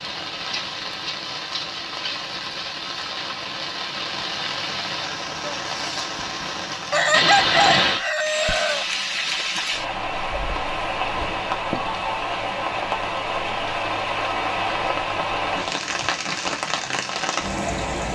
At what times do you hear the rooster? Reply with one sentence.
You can hear the rooster from 6.9 to 8.8 s.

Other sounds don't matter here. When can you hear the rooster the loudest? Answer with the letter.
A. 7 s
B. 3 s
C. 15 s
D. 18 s
A.